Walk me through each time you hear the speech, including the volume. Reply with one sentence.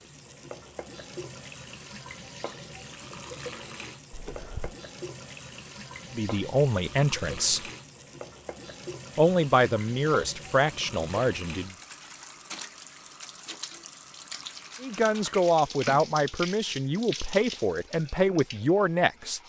The speech can be heard briefly from 6.1 to 7.7 s; briefly from 9.2 to 11.8 s; and from 14.8 to 19.4 s, at a steady volume.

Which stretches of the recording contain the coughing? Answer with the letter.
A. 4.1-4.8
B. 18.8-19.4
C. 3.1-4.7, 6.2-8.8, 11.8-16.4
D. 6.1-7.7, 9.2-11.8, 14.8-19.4
A.